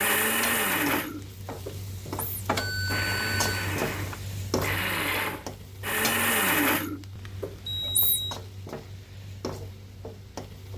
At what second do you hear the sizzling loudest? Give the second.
3 s.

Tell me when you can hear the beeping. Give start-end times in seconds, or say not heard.
2.5-3.7, 7.2-8.4.